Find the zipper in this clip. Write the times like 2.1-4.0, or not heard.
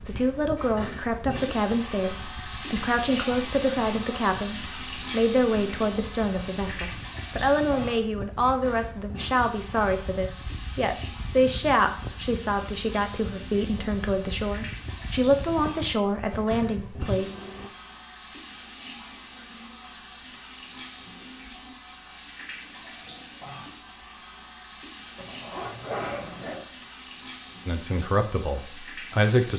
25.1-26.6.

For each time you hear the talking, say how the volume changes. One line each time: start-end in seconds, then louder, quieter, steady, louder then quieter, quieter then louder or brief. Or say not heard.
0.0-17.3 steady
27.6-29.5 brief.